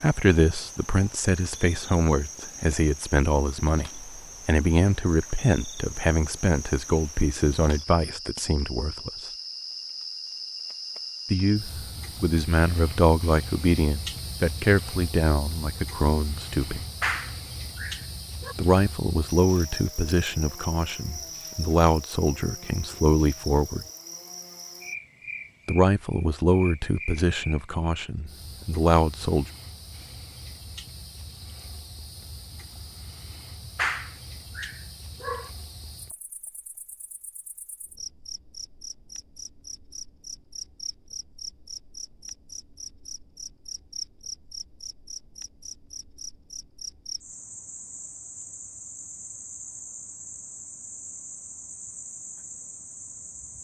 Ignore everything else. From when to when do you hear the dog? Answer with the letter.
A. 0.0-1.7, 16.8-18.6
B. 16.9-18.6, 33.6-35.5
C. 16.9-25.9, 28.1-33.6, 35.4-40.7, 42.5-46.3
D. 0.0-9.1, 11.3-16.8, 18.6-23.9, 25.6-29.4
B.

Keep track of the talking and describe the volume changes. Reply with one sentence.
The volume of the talking stays about the same.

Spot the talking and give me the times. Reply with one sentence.
You can hear the talking from 0.0 to 9.1 s, from 11.3 to 16.8 s, from 18.6 to 23.9 s and from 25.6 to 29.4 s.